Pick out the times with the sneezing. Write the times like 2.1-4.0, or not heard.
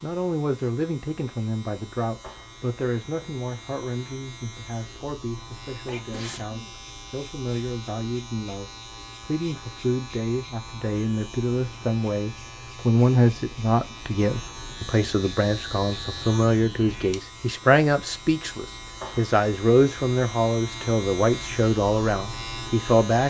5.8-6.8.